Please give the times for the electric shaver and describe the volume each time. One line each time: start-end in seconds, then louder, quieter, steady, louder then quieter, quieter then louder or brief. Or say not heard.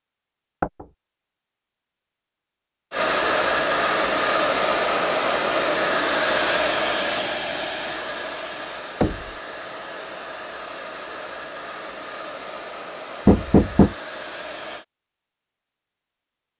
not heard.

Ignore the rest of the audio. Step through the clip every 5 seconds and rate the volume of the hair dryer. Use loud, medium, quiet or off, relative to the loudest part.
loud, loud, quiet, off.